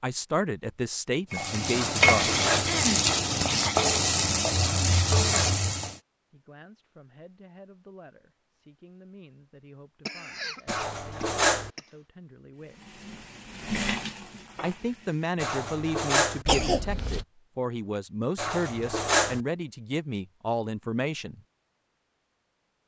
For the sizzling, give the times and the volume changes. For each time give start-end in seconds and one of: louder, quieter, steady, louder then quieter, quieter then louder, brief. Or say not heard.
1.3-6.0 steady
12.6-15.3 brief.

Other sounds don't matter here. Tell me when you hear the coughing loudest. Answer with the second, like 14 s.
17 s.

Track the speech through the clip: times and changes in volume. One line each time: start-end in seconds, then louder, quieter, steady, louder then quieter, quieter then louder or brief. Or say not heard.
0.0-2.4 brief
6.3-12.9 steady
14.6-21.4 steady.